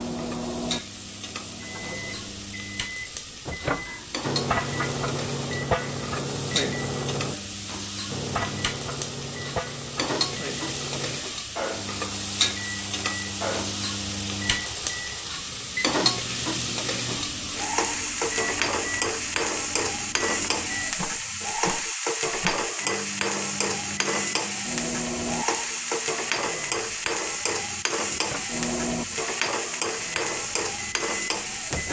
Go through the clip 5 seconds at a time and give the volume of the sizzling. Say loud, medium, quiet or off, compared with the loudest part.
medium, medium, loud, loud, loud, loud, loud.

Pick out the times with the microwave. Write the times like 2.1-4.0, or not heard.
0.0-31.8.